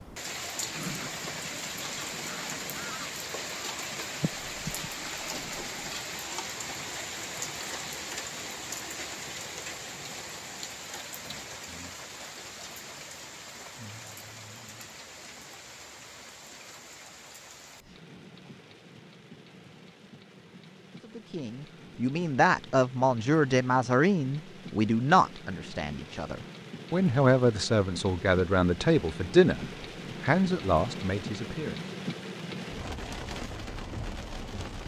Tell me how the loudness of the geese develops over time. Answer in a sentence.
The loudness of the geese goes up, then down.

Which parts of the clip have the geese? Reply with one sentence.
The geese can be heard from 0.7 to 6.0 s.